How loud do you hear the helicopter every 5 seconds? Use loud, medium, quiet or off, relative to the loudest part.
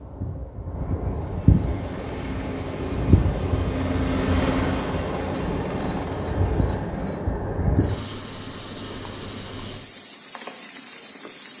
loud, medium, off.